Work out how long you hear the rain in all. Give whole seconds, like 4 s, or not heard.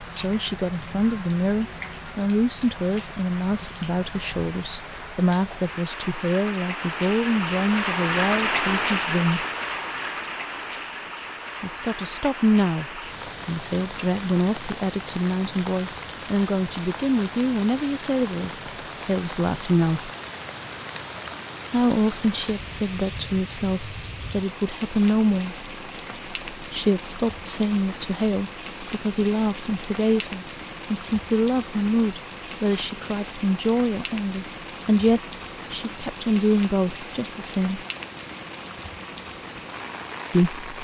41 s.